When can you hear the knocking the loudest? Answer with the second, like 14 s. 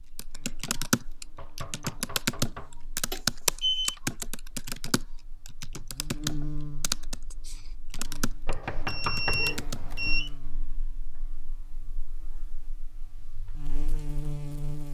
9 s.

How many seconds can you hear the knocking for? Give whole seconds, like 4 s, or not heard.
3 s.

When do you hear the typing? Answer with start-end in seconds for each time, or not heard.
0.1-9.9.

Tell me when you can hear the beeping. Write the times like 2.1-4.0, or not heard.
3.1-4.0, 8.6-10.3.